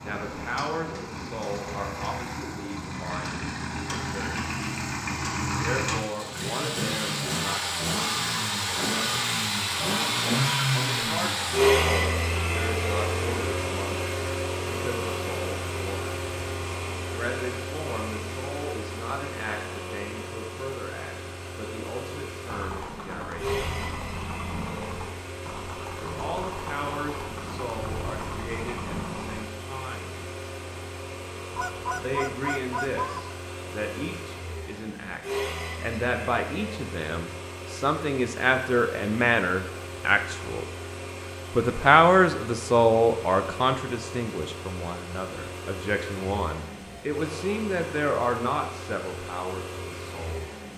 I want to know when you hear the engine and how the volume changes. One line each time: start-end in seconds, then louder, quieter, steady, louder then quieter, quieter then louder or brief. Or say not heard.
0.0-50.7 quieter.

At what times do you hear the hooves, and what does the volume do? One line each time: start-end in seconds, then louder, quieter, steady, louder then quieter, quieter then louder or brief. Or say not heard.
22.4-29.4 steady.